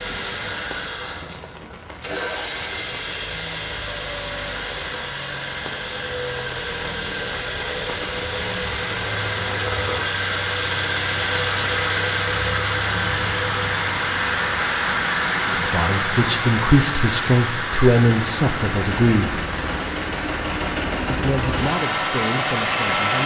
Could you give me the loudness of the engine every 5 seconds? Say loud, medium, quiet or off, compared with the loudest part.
medium, loud, loud, medium, loud.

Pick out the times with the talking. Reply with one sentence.
You can hear the talking from 15.6 to 19.4 s and from 21.1 to 23.2 s.